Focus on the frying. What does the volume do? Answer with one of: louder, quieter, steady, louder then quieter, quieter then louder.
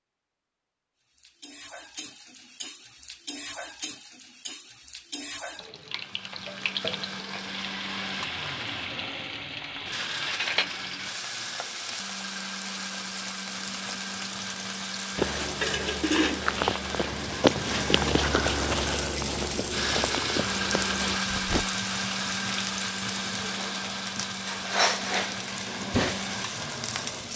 louder.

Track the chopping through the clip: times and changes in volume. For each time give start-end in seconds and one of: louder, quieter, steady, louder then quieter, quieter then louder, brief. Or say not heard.
not heard.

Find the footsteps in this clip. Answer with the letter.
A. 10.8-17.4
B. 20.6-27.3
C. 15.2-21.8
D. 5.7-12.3
C.